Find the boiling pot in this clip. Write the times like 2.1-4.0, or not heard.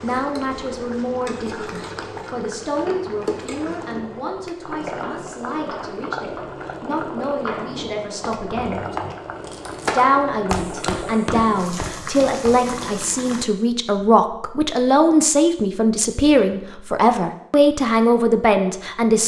0.0-13.4.